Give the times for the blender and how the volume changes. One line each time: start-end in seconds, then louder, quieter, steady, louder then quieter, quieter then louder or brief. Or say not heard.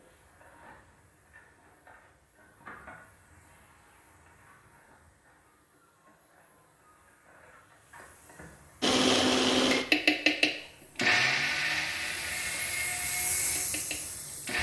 8.8-14.5 quieter.